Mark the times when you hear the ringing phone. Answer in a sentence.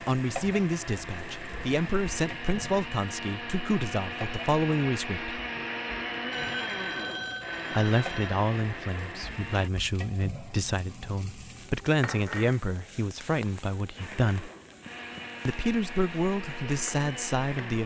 The ringing phone can be heard from 6.3 to 8.3 s.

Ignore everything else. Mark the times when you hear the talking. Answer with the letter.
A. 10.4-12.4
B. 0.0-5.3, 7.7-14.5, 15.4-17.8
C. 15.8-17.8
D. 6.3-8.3
B.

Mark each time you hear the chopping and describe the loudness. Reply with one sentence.
The chopping can't be heard in this clip.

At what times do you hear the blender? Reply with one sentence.
You can hear the blender from 0.0 to 9.7 s and from 13.9 to 17.8 s.